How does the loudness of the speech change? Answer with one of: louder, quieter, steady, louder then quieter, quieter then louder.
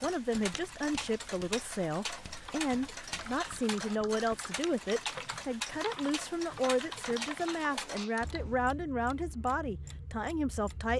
steady.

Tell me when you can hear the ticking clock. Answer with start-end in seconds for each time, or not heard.
0.0-10.9.